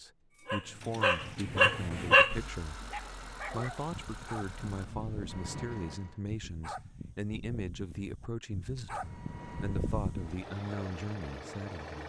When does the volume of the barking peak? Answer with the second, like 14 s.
2 s.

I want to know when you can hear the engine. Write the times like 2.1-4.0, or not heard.
0.0-6.2, 8.9-12.0.